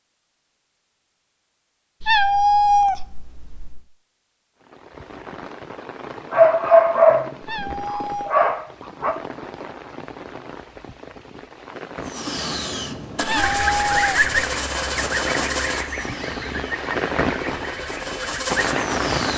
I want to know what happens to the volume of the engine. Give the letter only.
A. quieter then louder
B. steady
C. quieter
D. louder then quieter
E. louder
A.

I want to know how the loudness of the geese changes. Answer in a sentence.
The loudness of the geese goes down.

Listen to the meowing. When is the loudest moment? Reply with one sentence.
The loudest moment of the meowing is at 3 seconds.